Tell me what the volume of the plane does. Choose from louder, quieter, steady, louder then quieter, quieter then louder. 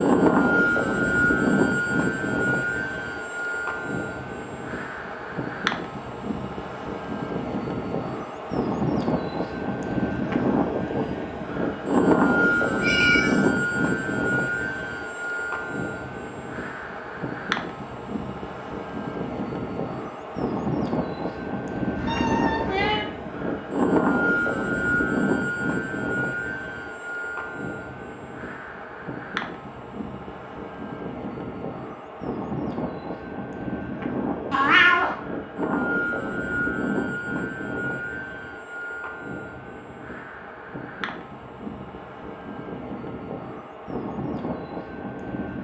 quieter.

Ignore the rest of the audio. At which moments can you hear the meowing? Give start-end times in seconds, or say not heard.
12.8-13.4, 21.9-23.1, 34.5-35.1.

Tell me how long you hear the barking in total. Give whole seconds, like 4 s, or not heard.
not heard.